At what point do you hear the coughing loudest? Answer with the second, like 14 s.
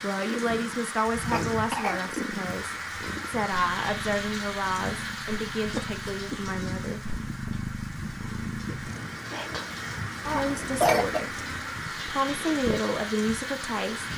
11 s.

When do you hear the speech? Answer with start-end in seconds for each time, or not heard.
0.0-7.0, 10.2-14.1.